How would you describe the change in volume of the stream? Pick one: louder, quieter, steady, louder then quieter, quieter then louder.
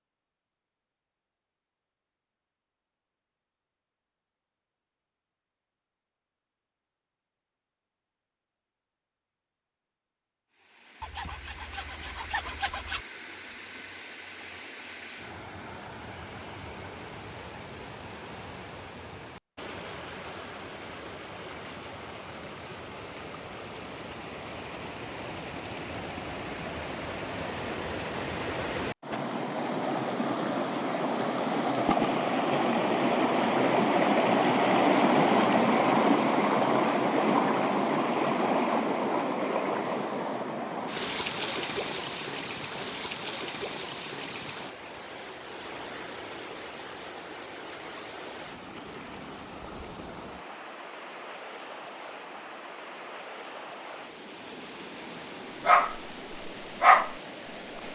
louder then quieter.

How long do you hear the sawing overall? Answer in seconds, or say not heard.
2 s.